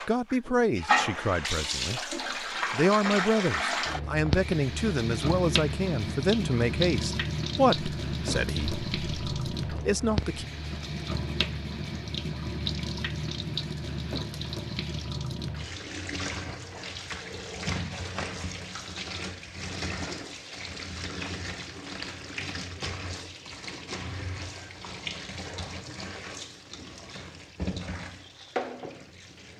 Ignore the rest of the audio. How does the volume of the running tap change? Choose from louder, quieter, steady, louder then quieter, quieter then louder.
quieter.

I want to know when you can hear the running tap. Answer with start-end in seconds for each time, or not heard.
0.0-29.5.